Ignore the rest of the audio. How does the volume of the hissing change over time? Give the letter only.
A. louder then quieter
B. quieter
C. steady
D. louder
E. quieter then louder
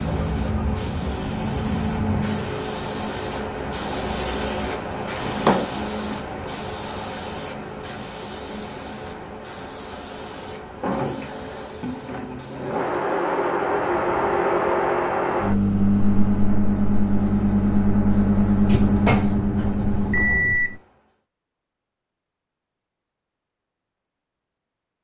B.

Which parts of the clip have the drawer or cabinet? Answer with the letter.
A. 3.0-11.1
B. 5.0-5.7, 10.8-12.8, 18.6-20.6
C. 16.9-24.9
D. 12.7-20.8
B.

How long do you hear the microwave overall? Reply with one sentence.
You can hear the microwave for 8 seconds altogether.